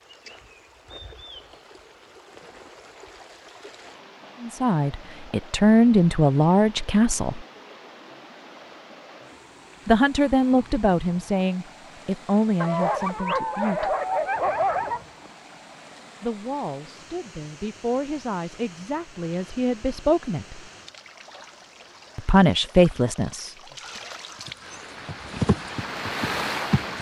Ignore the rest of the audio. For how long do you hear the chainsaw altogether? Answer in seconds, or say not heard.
not heard.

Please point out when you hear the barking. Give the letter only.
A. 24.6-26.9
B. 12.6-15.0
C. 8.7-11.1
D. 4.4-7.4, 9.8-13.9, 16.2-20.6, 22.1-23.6
B.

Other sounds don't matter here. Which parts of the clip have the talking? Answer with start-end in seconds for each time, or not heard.
4.4-7.4, 9.8-13.9, 16.2-20.6, 22.1-23.6.